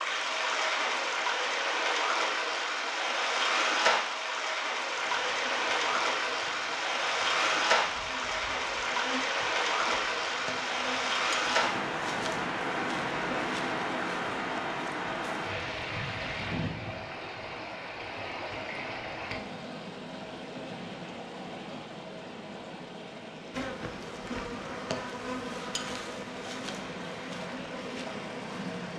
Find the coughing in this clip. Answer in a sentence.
The coughing can't be heard in this clip.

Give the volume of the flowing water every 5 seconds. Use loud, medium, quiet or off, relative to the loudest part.
loud, loud, loud, medium, quiet, medium.